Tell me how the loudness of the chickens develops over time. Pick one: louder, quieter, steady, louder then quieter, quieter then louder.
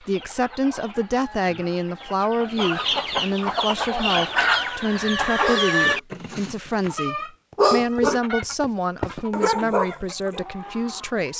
louder then quieter.